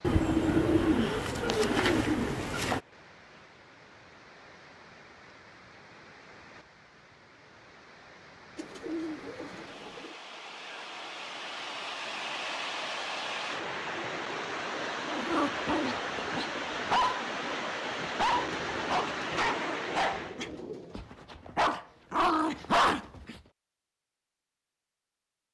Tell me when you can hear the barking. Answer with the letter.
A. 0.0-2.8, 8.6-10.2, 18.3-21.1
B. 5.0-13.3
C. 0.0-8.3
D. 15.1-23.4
D.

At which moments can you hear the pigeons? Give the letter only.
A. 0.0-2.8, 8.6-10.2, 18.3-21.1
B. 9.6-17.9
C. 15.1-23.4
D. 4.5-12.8
A.